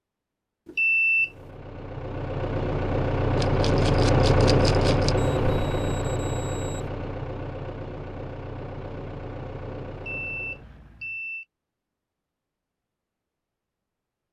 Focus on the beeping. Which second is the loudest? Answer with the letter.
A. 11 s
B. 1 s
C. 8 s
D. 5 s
B.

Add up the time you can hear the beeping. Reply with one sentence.
The beeping can be heard for 4 seconds in total.